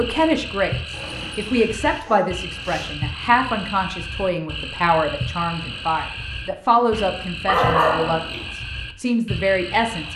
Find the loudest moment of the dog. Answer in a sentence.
The volume of the dog peaks at 8 seconds.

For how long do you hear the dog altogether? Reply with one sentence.
You can hear the dog for 4 seconds altogether.